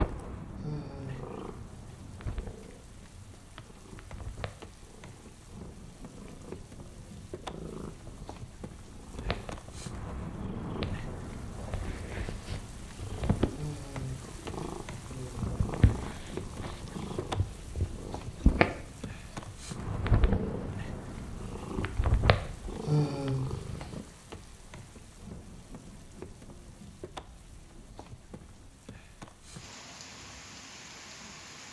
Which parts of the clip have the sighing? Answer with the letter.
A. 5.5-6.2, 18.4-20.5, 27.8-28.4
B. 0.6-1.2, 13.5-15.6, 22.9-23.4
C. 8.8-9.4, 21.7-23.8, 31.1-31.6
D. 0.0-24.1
B.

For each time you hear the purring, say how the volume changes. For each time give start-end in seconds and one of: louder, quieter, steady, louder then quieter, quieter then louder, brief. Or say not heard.
0.0-24.1 louder.